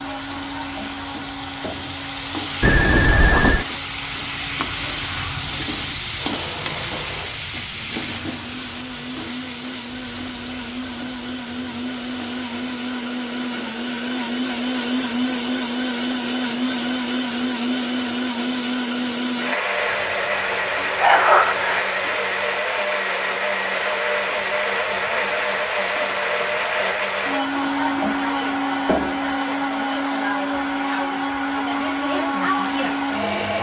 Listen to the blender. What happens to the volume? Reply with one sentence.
The volume of the blender goes up.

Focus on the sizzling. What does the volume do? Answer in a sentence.
The volume of the sizzling goes down.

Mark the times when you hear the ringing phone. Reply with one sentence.
The ringing phone can be heard from 2.6 to 3.6 s and from 20.1 to 21.8 s.